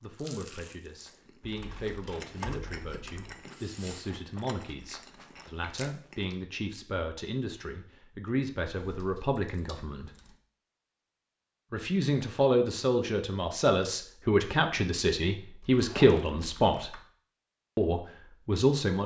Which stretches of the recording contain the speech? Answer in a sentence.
The speech can be heard from 0.0 to 10.1 s, from 11.7 to 16.9 s and from 17.8 to 19.0 s.